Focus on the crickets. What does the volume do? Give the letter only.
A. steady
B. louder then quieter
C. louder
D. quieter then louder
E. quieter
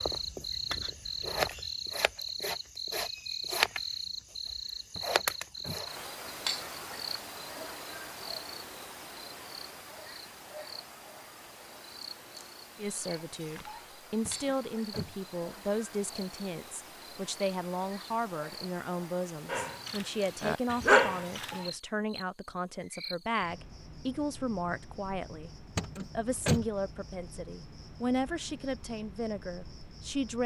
E.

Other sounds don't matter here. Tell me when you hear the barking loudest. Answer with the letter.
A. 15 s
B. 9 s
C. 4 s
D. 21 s
D.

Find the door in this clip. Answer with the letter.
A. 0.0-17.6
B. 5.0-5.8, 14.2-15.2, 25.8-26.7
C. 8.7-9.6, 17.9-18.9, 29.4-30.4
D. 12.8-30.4
B.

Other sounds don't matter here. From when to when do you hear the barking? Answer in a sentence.
The barking can be heard from 19.4 to 21.5 s.